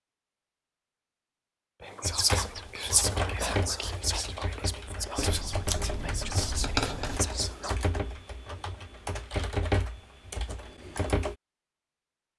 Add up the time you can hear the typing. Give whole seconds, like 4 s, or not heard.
9 s.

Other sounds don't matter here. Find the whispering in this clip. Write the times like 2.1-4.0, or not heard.
1.8-7.8.